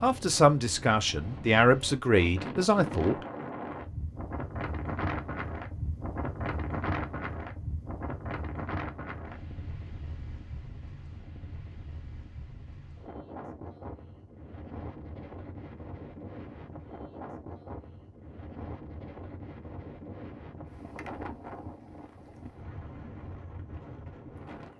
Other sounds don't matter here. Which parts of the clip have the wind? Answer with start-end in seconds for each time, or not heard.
0.0-24.7.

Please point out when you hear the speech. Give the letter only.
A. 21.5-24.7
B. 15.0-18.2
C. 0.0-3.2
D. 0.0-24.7
C.